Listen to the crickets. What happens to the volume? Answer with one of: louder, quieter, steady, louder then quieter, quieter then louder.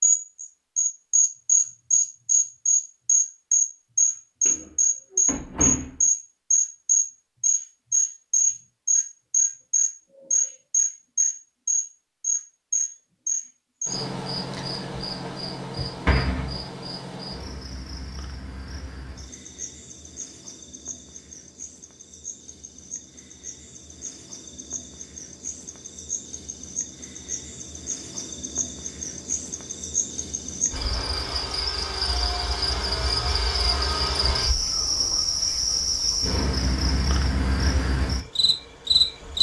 quieter then louder.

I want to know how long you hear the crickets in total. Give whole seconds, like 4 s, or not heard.
39 s.